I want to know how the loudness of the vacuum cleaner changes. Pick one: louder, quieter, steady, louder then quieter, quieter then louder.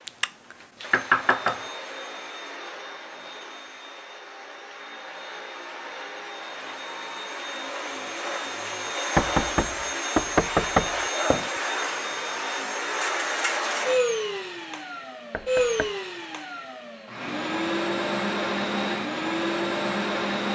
louder.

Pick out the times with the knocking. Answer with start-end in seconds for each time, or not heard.
0.1-1.6, 9.2-11.6, 15.3-15.9.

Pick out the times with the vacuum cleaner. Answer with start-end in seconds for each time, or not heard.
0.0-20.4.